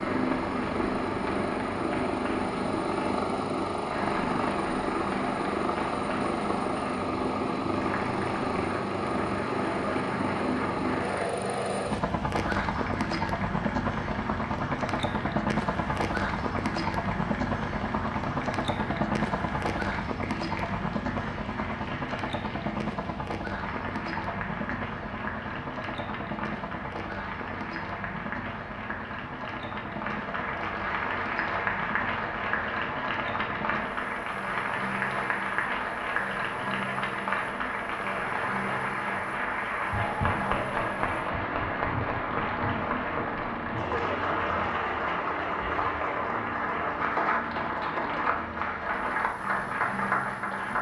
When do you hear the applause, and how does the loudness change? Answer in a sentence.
The applause can be heard from 0.0 to 50.7 s, getting louder.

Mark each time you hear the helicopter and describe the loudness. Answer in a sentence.
The helicopter can be heard from 0.0 to 50.7 s, getting quieter.